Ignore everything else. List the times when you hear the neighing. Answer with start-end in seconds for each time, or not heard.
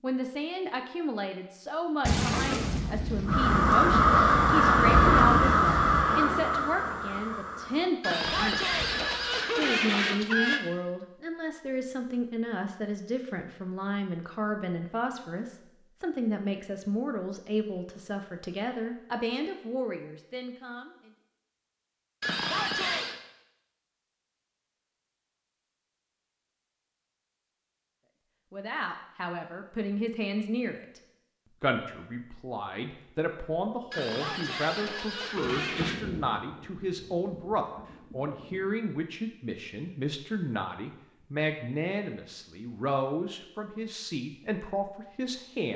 8.0-10.6, 22.2-23.1, 33.9-36.0.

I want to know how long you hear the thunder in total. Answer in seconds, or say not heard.
7 s.